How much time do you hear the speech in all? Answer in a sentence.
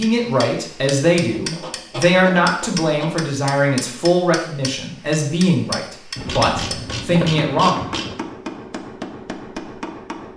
You can hear the speech for 8 seconds altogether.